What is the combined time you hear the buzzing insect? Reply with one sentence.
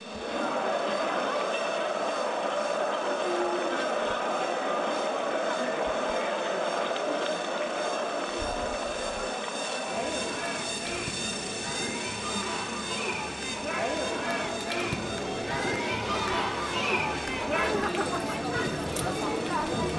The buzzing insect can be heard for 20 seconds in total.